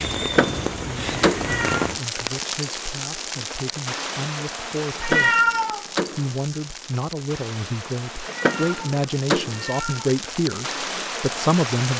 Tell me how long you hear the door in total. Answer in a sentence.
You can hear the door for 4 seconds altogether.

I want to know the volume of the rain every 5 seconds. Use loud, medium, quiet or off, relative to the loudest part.
loud, medium, loud.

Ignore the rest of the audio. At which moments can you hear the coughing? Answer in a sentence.
You can't hear the coughing here.